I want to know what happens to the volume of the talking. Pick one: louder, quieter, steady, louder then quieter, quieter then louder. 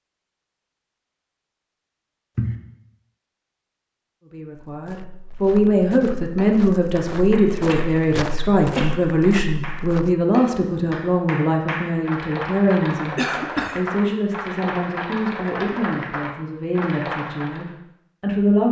quieter.